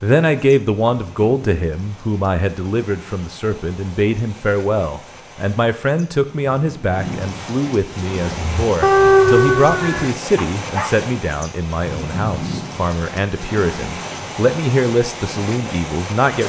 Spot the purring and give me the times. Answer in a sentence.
You can't hear the purring here.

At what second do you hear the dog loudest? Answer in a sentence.
The loudest moment of the dog is at 9 seconds.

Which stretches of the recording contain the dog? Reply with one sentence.
The dog can be heard from 8.2 to 10.9 s.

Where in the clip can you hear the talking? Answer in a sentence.
The talking can be heard from 0.0 to 16.4 s.